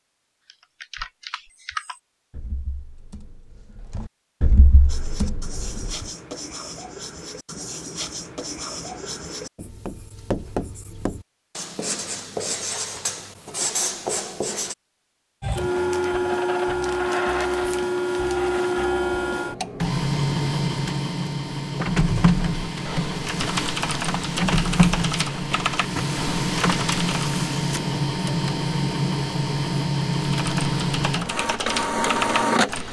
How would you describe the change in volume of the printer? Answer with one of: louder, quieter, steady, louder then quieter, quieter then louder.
steady.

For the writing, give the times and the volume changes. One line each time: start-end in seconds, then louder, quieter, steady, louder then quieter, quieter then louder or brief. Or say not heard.
4.8-14.8 louder.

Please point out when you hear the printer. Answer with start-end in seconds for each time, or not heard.
15.4-32.8.